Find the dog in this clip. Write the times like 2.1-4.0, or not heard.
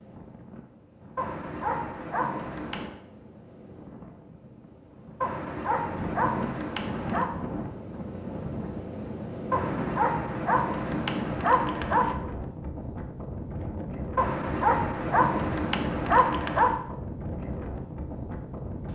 1.1-2.9, 5.2-7.3, 9.5-12.2, 14.2-16.8.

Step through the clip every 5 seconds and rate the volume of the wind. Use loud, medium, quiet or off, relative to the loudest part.
quiet, loud, loud, loud.